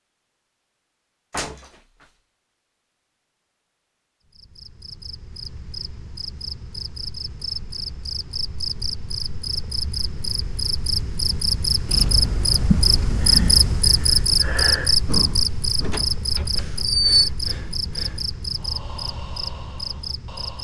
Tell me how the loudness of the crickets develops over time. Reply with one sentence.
The volume of the crickets goes up, then down.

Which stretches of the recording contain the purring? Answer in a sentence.
You can hear the purring from 11.8 to 14.4 s.